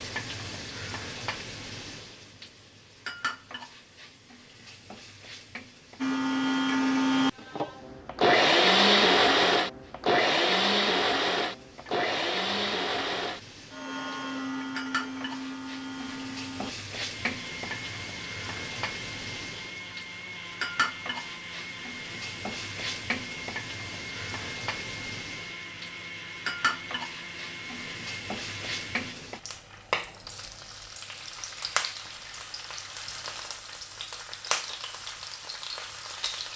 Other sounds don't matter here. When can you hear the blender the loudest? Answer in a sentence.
The loudest moment of the blender is at 9 seconds.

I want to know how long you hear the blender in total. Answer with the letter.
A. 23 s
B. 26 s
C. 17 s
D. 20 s
A.